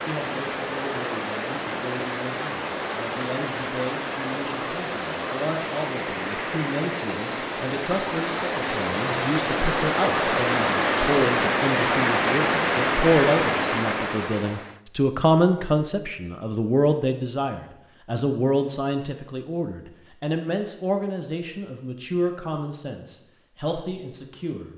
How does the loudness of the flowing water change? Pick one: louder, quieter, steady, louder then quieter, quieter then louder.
louder.